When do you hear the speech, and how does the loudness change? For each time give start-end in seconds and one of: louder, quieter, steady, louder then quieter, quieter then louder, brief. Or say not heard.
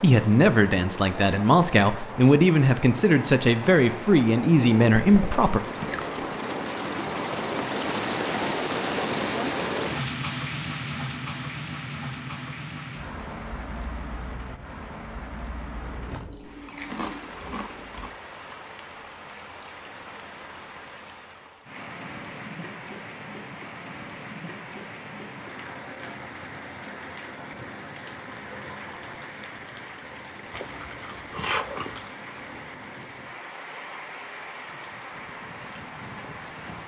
0.0-5.6 steady.